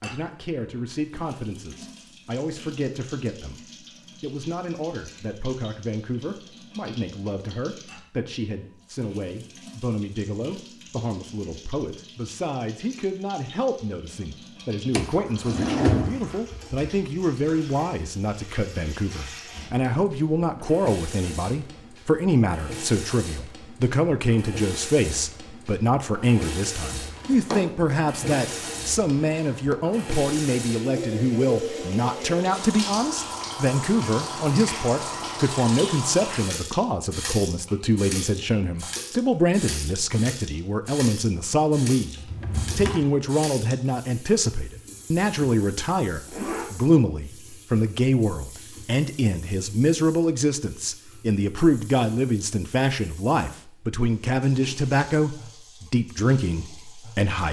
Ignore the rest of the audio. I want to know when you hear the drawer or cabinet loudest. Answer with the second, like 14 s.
16 s.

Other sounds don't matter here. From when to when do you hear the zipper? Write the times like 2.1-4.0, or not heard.
46.0-46.7.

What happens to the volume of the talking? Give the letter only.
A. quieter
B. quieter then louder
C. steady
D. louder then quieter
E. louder
E.